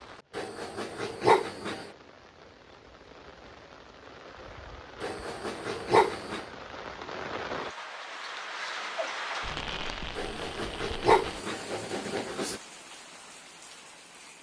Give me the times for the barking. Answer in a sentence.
The barking can be heard from 0.3 to 1.9 s, from 5.0 to 6.5 s and from 10.2 to 12.6 s.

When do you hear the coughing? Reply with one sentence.
The coughing can't be heard in this clip.